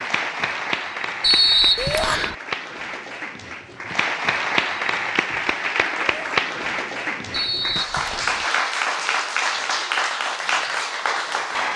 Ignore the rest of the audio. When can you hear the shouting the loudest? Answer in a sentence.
The volume of the shouting peaks at 2 seconds.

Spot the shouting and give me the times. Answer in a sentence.
The shouting can be heard from 1.8 to 2.2 s and from 6.0 to 6.4 s.